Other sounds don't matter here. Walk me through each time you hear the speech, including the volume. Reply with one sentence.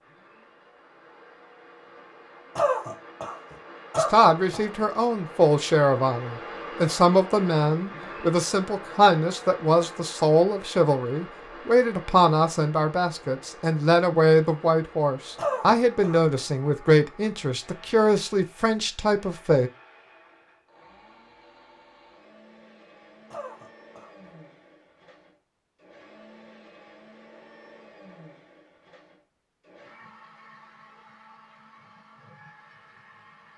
The speech can be heard from 4.0 to 19.7 s, at a steady volume.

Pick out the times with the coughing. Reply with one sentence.
The coughing can be heard from 2.5 to 4.7 s, from 15.3 to 16.2 s and from 23.3 to 24.3 s.